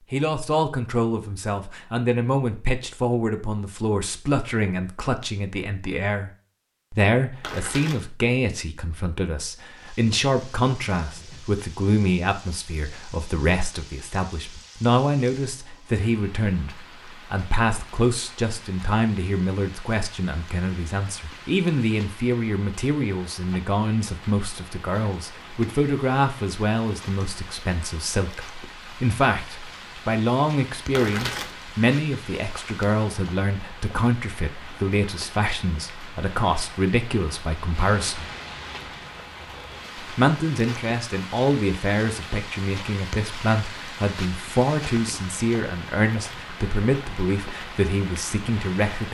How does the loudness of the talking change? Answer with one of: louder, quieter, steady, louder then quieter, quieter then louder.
steady.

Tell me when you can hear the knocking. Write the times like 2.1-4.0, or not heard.
not heard.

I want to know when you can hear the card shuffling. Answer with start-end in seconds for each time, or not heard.
7.4-8.1, 30.9-31.6.